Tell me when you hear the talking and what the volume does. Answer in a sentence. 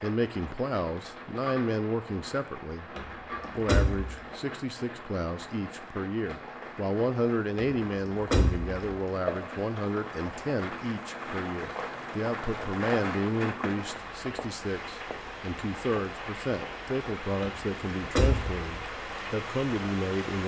You can hear the talking from 0.0 to 20.4 s, at a steady volume.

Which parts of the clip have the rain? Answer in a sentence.
The rain can be heard from 0.0 to 20.4 s.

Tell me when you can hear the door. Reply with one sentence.
You can hear the door from 3.0 to 4.2 s, from 7.5 to 8.8 s and from 17.4 to 18.6 s.